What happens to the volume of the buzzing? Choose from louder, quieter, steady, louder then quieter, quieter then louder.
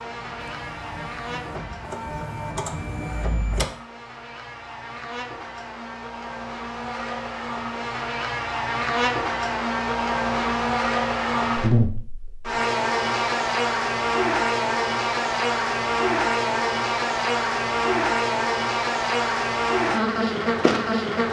louder.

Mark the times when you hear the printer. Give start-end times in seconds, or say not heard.
0.2-3.6.